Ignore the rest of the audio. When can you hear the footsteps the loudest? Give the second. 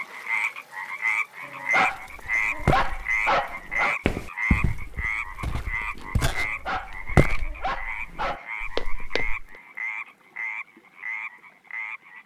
7 s.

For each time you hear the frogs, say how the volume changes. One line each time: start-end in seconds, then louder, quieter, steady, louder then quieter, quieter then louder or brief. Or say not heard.
0.0-12.2 quieter.